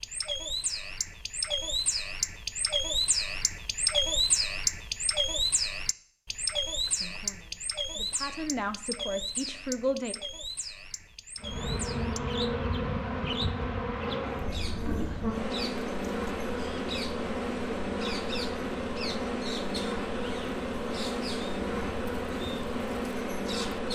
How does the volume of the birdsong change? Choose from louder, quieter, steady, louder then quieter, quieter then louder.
quieter.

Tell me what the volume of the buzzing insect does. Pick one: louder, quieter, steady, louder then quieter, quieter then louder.
steady.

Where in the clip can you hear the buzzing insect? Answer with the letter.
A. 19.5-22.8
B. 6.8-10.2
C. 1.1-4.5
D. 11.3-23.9
D.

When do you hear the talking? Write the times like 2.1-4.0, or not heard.
6.8-10.2.